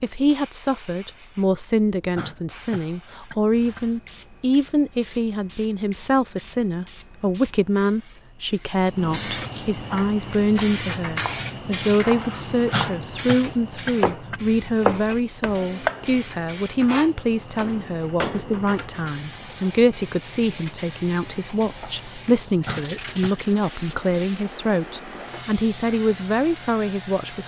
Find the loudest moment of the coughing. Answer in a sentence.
The volume of the coughing peaks at 13 seconds.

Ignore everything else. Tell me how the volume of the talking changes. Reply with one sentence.
The volume of the talking stays about the same.